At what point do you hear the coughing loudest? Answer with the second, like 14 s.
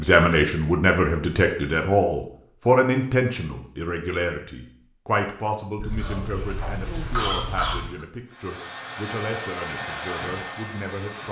7 s.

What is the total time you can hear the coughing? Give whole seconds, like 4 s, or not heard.
2 s.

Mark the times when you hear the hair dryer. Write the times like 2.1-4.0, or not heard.
8.2-11.2.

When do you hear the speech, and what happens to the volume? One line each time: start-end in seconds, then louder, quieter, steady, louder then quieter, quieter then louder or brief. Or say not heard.
0.0-11.2 quieter.